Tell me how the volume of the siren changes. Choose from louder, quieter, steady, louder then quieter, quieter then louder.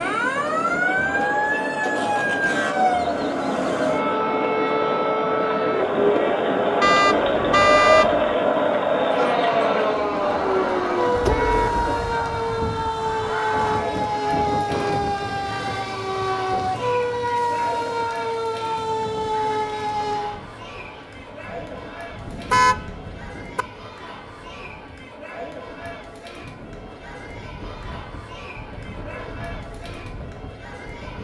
steady.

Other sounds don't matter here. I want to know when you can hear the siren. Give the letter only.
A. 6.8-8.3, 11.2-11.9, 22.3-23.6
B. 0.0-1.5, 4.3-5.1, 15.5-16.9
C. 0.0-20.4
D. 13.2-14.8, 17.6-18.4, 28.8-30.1
C.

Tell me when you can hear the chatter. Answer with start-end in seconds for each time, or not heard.
0.2-31.1.